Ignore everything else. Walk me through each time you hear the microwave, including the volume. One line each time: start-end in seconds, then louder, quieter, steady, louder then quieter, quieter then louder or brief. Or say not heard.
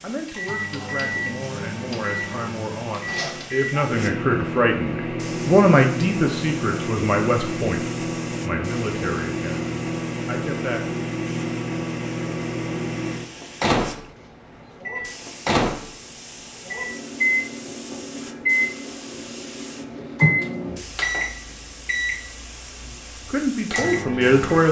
0.0-24.6 steady.